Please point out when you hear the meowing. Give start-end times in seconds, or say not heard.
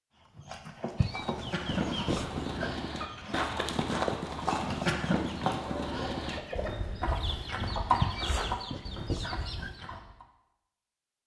0.9-2.7, 8.0-9.7.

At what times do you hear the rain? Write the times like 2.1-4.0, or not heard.
not heard.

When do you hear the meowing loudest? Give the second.
8 s.